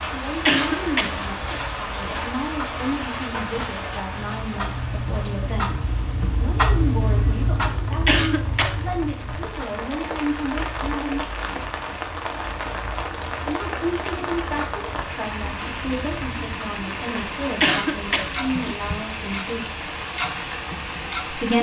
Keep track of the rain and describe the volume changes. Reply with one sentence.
The volume of the rain goes down, then up.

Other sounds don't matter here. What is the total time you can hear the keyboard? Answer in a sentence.
The keyboard can't be heard in this clip.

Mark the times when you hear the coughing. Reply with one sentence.
The coughing can be heard from 0.5 to 1.6 s, from 8.1 to 8.8 s and from 17.6 to 18.8 s.